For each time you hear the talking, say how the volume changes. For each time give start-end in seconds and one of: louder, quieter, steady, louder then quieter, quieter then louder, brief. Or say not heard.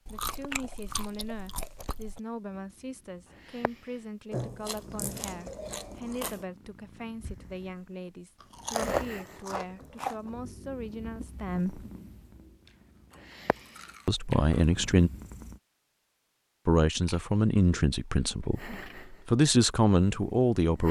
0.1-11.8 steady
14.1-15.1 brief
16.6-20.8 quieter then louder.